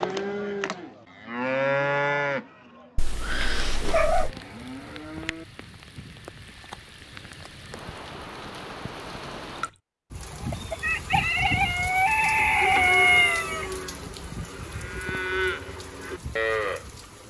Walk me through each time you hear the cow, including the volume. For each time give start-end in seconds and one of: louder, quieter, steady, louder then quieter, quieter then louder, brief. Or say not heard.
0.0-5.5 louder then quieter
12.4-17.2 quieter then louder.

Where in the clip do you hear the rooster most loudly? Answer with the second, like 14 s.
13 s.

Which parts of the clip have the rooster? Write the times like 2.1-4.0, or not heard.
10.5-13.7.